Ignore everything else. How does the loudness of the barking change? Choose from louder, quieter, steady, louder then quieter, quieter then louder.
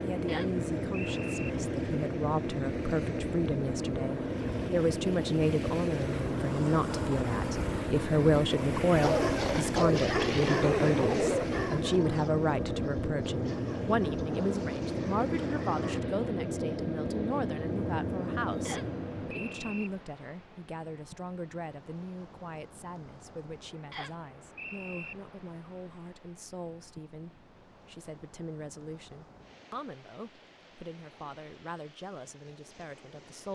quieter.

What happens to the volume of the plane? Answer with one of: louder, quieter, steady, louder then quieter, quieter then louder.
steady.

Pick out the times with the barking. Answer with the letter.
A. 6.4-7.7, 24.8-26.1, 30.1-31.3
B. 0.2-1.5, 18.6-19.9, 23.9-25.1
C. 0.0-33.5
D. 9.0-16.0
D.